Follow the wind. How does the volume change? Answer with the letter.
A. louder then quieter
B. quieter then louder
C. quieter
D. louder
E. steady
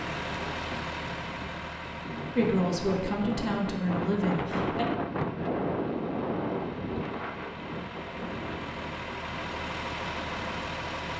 A.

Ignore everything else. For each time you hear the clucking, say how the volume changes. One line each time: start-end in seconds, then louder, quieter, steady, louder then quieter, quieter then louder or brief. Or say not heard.
not heard.